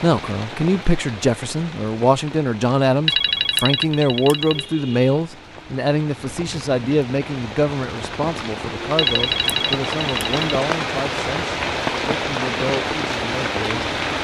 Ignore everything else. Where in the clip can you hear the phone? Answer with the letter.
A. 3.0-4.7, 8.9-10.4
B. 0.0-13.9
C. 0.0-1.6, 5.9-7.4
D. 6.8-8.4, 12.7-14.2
A.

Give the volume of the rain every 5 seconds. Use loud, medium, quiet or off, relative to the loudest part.
quiet, medium, loud.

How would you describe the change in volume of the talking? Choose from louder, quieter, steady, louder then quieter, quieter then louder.
quieter.